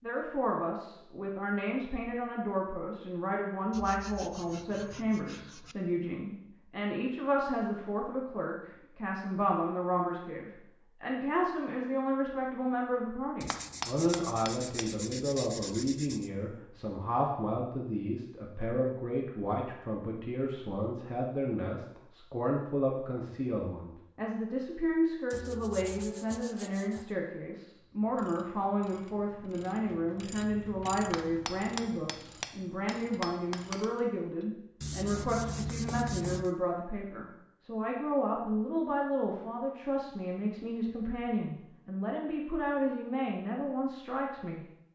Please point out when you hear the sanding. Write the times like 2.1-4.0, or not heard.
3.7-5.8, 13.4-16.3, 25.3-27.1, 34.8-36.5.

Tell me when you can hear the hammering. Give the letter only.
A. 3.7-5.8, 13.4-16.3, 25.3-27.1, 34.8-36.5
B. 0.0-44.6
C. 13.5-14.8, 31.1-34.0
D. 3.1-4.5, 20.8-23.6
C.